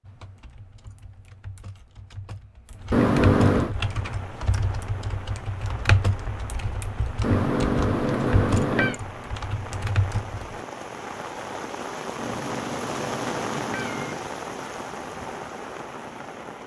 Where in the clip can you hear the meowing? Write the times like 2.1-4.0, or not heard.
2.9-3.8, 7.2-9.0, 12.2-14.2.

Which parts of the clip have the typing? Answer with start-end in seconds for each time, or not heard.
0.0-10.6.